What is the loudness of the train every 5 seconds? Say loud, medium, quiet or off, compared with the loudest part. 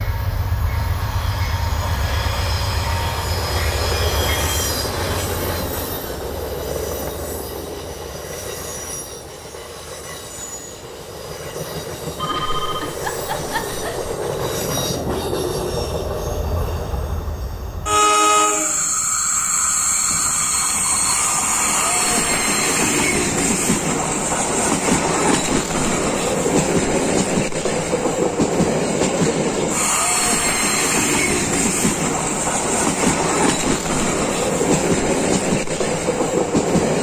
medium, medium, medium, loud, loud, loud, loud, loud.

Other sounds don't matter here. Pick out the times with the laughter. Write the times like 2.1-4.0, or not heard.
12.2-14.1.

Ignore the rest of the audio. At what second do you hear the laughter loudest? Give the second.
13 s.